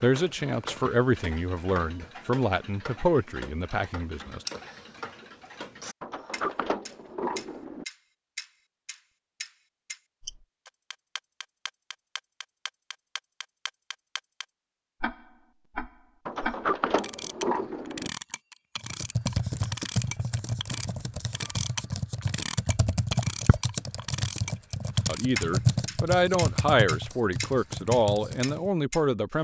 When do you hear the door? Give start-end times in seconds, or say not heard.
6.0-7.8, 16.2-18.1.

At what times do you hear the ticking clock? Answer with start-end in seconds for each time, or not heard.
0.0-29.0.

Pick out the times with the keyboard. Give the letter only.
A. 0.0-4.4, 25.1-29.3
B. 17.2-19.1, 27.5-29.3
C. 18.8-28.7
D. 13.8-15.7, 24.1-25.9
C.